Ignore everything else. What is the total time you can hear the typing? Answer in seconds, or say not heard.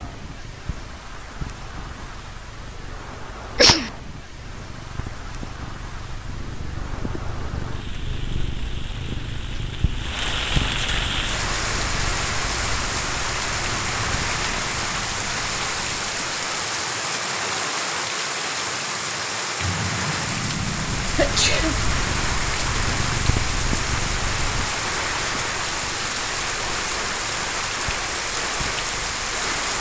not heard.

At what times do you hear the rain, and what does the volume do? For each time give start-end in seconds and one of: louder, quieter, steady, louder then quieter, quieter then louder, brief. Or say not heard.
0.0-29.7 louder.